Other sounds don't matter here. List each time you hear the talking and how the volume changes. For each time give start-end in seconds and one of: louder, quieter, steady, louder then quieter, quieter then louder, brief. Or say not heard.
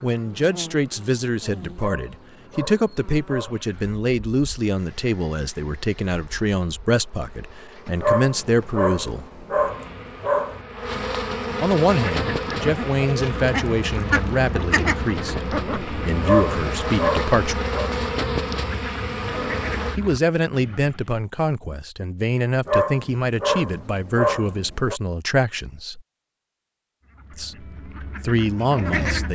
0.0-9.2 steady
11.6-17.6 quieter then louder
19.9-26.0 steady
27.4-29.3 brief.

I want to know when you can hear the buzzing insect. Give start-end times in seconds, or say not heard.
0.0-20.0.